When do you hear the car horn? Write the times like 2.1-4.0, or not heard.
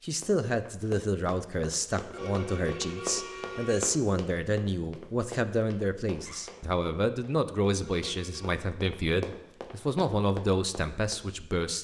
2.1-3.8, 7.8-8.6.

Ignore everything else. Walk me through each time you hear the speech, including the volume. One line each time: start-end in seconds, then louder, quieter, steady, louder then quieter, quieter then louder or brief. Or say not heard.
0.0-11.7 steady.